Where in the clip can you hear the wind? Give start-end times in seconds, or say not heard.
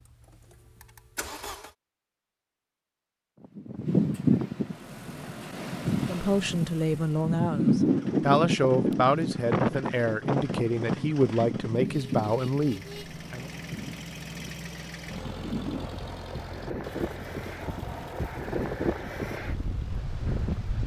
3.4-20.8.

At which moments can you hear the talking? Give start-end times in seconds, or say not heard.
6.0-13.4.